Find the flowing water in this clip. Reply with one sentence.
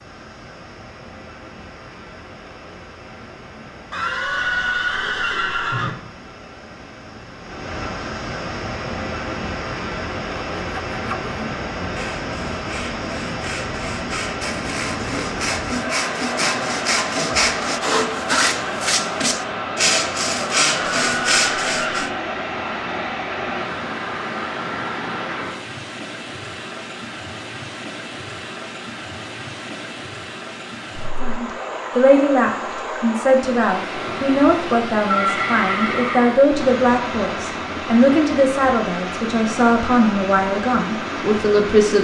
You can hear the flowing water from 0.0 to 41.9 s.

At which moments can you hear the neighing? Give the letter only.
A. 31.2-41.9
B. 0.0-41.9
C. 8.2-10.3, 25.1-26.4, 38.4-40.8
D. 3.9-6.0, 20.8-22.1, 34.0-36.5
D.